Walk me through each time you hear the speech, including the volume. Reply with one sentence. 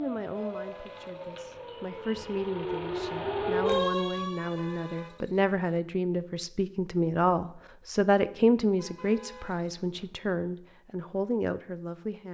You can hear the speech from 0.0 to 12.2 s, getting louder then quieter.